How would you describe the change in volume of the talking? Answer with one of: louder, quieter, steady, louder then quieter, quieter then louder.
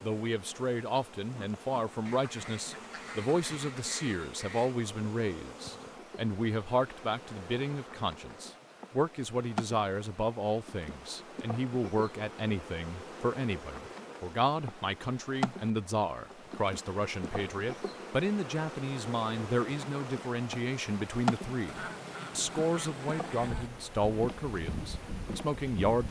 steady.